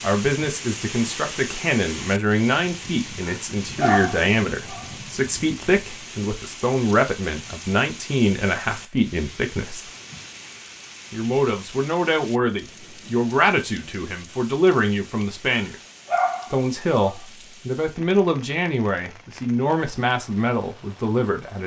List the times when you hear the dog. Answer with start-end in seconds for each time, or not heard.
3.2-4.9, 15.5-17.2.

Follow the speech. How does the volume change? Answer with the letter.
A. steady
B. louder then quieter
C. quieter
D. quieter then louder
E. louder
A.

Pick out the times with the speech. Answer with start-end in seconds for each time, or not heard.
0.0-9.8, 11.1-15.8, 16.5-21.6.